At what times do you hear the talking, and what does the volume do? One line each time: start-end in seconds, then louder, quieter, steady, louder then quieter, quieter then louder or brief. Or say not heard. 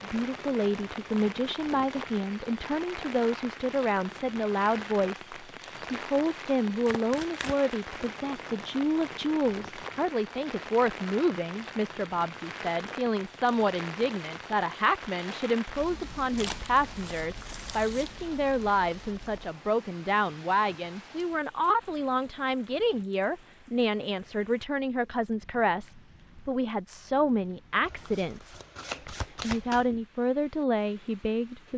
0.0-31.7 steady.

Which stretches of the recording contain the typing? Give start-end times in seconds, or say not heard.
not heard.